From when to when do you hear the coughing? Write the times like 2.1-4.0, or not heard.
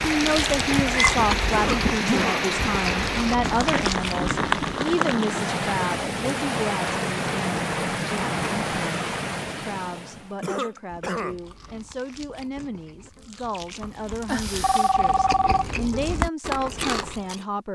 1.5-2.5, 10.4-11.4.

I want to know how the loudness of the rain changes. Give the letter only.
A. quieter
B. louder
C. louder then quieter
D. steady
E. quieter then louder
D.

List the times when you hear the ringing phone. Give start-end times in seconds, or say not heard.
14.2-15.7.